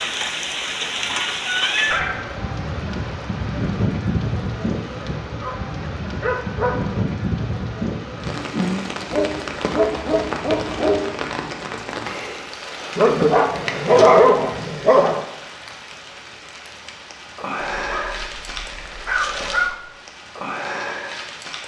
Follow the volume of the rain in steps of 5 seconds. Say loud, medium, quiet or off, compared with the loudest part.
loud, loud, medium, medium, medium.